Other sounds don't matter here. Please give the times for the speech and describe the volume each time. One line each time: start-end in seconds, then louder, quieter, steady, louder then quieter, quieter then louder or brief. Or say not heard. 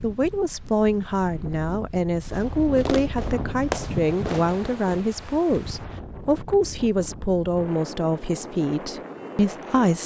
0.0-10.0 steady.